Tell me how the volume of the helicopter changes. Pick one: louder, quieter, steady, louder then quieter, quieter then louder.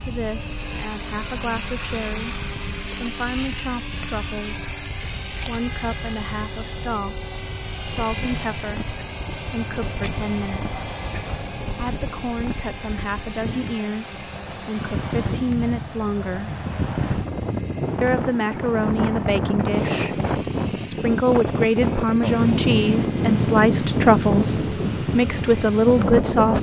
quieter.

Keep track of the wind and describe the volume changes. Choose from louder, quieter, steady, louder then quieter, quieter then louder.
louder.